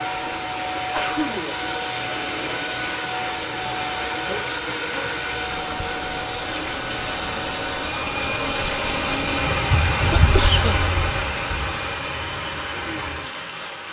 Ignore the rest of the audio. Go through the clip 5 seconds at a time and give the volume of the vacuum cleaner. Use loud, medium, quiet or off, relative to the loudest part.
loud, loud, medium.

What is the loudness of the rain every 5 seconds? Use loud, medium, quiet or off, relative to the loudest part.
medium, loud, loud.